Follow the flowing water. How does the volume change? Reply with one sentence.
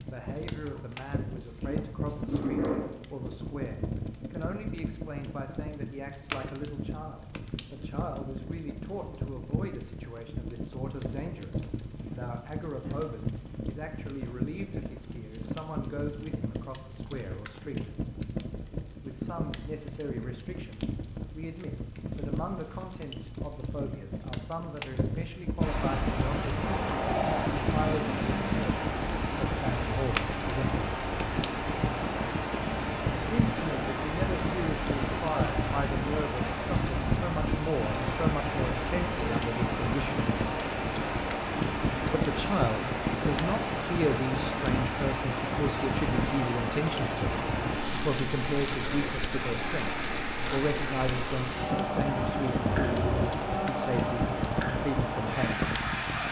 The loudness of the flowing water stays about the same.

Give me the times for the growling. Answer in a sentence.
You can hear the growling from 0.6 to 2.9 s, from 26.6 to 28.6 s and from 52.6 to 53.3 s.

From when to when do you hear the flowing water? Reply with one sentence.
The flowing water can be heard from 25.6 to 56.2 s.